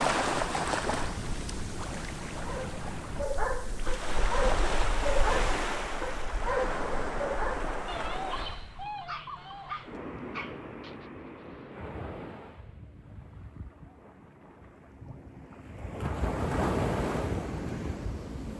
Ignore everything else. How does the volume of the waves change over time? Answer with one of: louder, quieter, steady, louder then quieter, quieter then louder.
quieter then louder.